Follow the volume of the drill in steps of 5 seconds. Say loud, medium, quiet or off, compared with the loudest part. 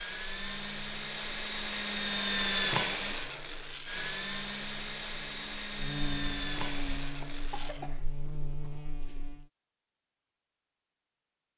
loud, medium, off.